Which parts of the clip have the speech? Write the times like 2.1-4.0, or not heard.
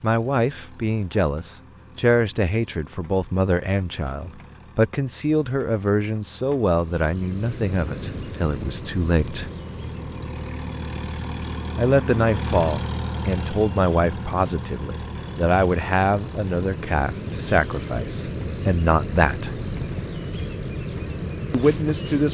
0.0-9.5, 11.8-19.6, 21.5-22.2.